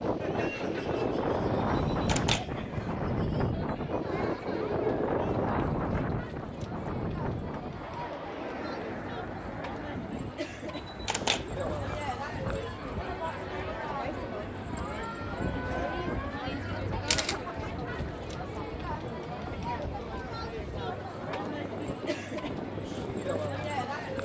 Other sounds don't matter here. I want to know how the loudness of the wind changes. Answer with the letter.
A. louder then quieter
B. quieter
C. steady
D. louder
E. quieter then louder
B.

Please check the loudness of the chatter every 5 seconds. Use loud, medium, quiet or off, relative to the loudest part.
medium, medium, loud, loud, loud.